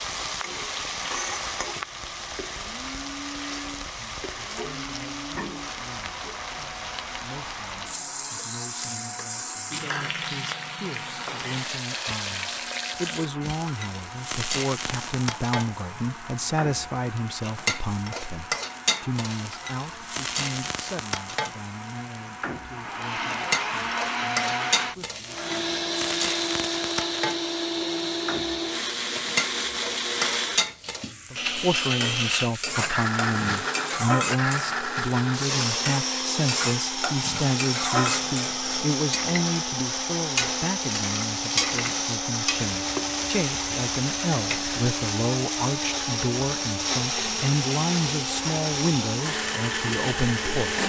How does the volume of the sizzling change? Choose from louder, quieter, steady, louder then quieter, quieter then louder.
steady.